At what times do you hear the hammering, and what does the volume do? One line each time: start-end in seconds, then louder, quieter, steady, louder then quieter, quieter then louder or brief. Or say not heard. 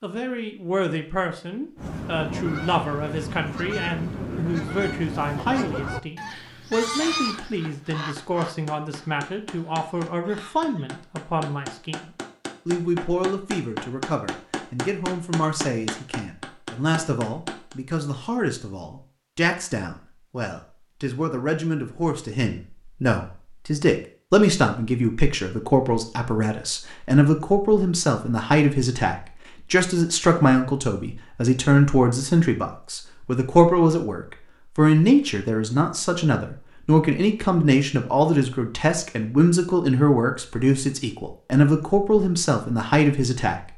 7.3-17.8 louder.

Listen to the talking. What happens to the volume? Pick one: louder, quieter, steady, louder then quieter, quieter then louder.
louder.